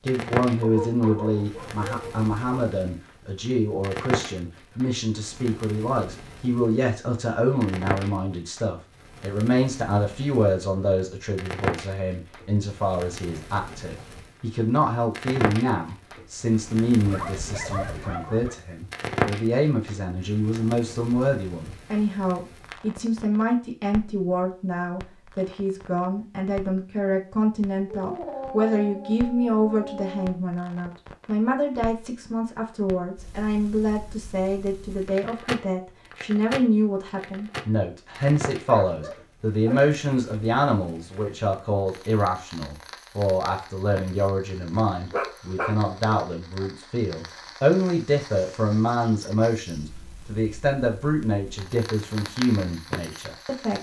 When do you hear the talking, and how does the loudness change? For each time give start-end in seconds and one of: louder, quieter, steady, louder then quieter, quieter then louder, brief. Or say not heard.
0.1-53.7 steady.